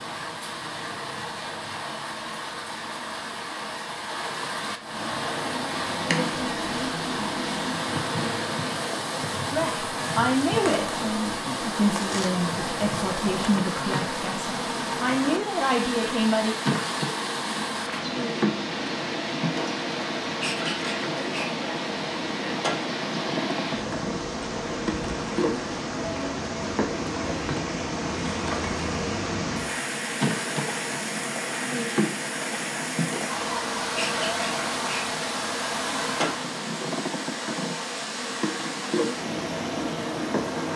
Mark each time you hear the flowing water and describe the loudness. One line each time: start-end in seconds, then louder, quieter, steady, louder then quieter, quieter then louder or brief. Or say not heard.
0.0-40.7 steady.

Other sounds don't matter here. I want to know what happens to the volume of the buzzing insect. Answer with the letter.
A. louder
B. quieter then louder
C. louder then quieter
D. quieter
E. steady
E.